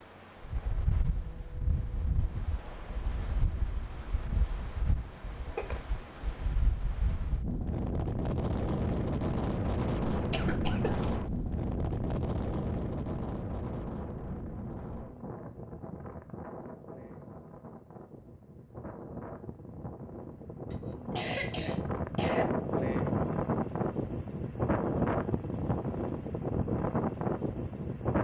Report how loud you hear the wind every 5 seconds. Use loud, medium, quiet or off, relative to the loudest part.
medium, loud, loud, quiet, loud, loud.